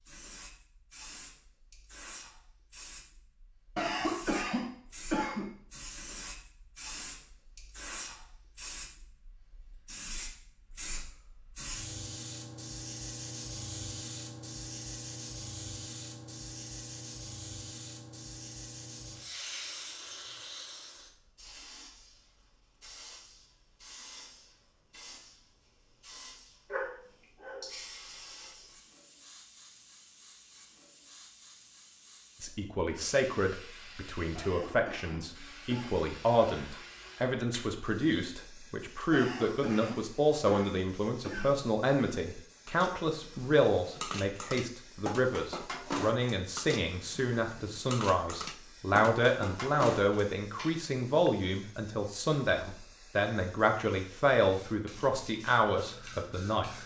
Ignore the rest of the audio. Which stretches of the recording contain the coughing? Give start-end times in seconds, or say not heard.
3.8-5.5, 34.4-36.0, 39.1-41.5.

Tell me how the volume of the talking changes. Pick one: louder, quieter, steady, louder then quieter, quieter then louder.
steady.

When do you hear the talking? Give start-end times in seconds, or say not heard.
32.4-56.8.